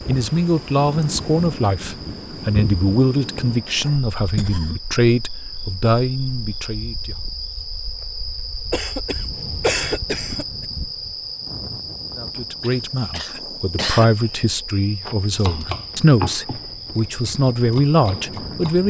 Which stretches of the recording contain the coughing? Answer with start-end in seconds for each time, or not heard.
4.3-4.8, 8.7-10.4, 12.6-14.3.